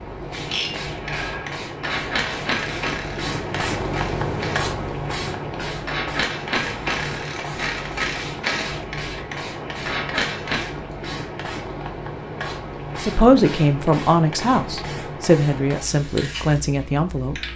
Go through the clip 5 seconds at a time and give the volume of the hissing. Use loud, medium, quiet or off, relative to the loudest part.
loud, loud, loud, medium.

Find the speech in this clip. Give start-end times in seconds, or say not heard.
12.9-17.5.